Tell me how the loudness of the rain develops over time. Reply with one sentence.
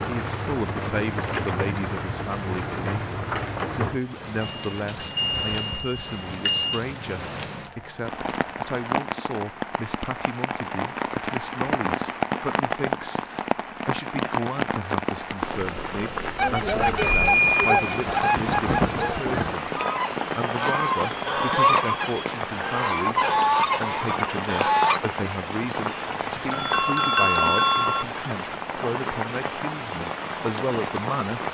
The volume of the rain stays about the same.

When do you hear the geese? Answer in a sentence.
The geese can be heard from 16.4 to 25.0 s.